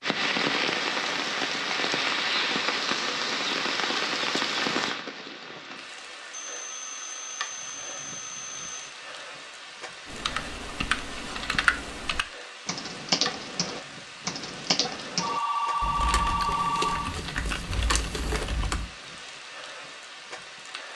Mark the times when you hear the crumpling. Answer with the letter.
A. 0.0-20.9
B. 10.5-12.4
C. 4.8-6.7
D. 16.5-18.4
D.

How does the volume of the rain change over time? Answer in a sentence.
The volume of the rain goes down.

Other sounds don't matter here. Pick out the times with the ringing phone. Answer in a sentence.
You can hear the ringing phone from 6.3 to 8.9 s and from 15.2 to 17.1 s.